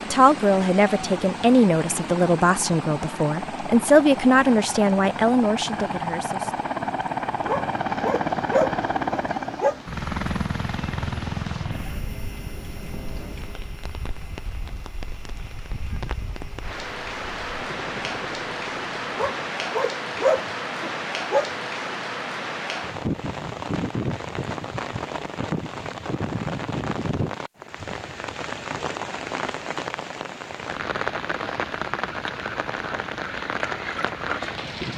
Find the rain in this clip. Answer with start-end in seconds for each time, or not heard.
0.0-34.9.